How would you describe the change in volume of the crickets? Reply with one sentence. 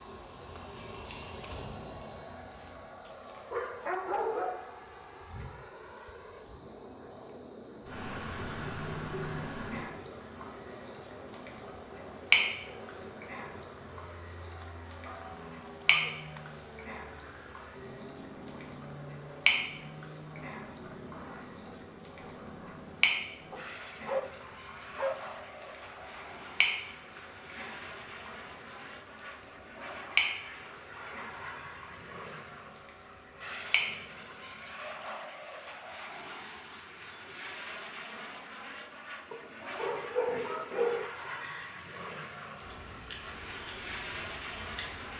The volume of the crickets goes down.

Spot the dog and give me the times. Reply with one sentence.
The dog can be heard from 3.0 to 4.8 s, from 14.6 to 16.4 s, from 23.5 to 25.2 s and from 39.3 to 41.1 s.